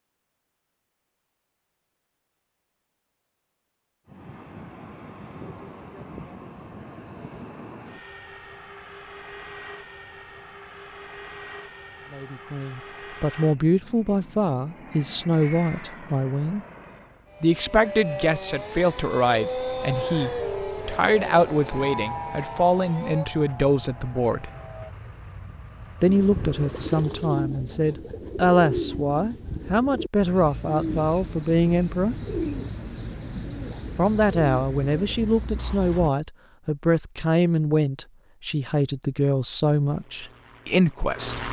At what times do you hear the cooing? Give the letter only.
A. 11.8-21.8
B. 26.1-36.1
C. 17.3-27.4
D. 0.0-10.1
B.